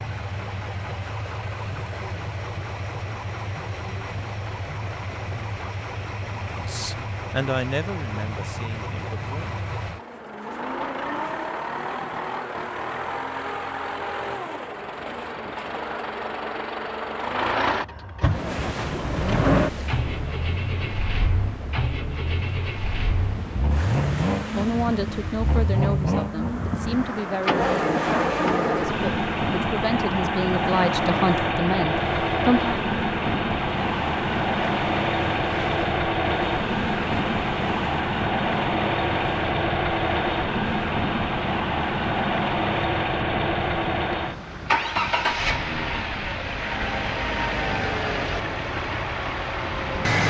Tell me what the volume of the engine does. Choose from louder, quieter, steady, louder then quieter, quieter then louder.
louder.